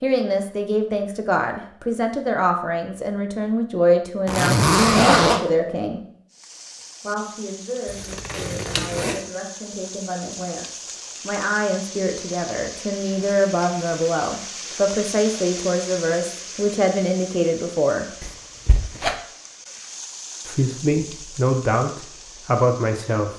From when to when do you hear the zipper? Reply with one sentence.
The zipper can be heard from 4.2 to 5.4 s, from 7.8 to 9.2 s and from 18.2 to 19.1 s.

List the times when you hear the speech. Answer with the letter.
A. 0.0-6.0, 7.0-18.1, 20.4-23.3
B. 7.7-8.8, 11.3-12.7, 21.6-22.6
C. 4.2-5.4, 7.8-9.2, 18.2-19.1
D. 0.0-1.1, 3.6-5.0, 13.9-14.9
A.